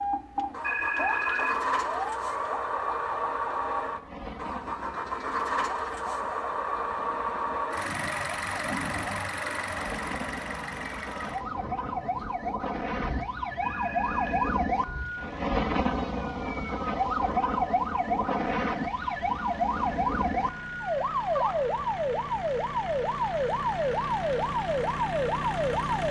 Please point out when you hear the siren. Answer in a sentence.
You can hear the siren from 0.0 to 26.0 s.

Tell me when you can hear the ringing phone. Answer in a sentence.
You can hear the ringing phone from 0.6 to 1.6 s and from 13.6 to 14.6 s.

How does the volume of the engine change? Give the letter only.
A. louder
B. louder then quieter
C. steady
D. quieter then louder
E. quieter
D.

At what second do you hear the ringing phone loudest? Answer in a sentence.
The volume of the ringing phone peaks at 1 second.